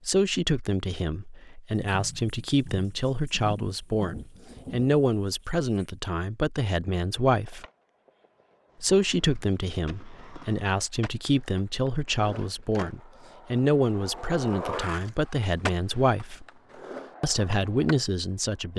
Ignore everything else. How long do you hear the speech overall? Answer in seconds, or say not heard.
17 s.